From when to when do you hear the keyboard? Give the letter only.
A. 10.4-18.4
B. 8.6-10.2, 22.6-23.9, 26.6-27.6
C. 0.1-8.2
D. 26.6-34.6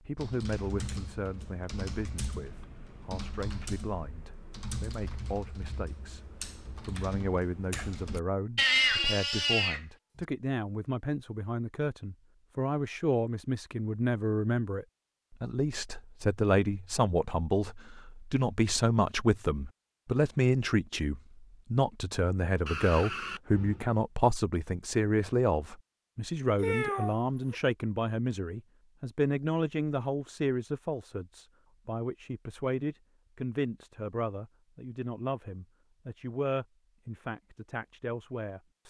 C.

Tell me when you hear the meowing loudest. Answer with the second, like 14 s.
9 s.